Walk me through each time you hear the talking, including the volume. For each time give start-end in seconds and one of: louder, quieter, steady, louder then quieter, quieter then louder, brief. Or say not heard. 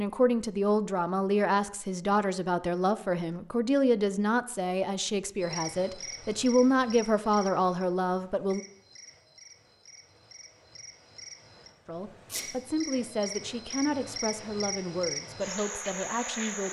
0.0-8.6 steady
11.8-16.6 steady.